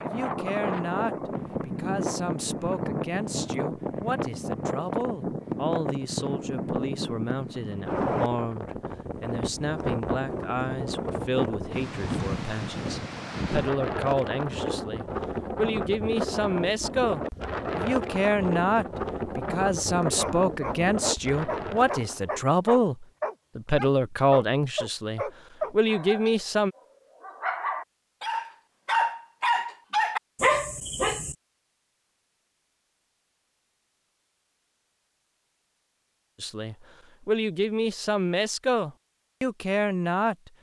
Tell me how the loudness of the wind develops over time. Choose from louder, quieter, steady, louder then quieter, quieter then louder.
steady.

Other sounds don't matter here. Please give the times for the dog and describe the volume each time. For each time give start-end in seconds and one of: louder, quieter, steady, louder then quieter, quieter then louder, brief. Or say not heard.
20.1-31.4 louder.